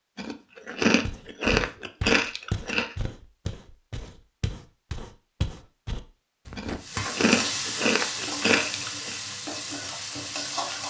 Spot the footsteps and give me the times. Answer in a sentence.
The footsteps can be heard from 1.0 to 6.8 s.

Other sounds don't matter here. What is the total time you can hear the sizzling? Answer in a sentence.
You can hear the sizzling for 4 seconds altogether.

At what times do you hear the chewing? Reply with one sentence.
The chewing can be heard from 0.1 to 3.0 s and from 6.5 to 9.2 s.